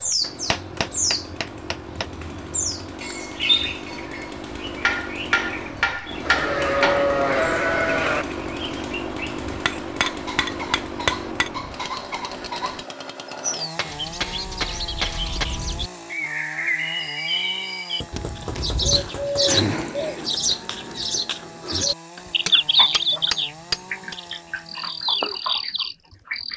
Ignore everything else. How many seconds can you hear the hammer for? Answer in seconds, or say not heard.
11 s.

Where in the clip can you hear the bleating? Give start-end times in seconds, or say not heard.
6.2-8.2.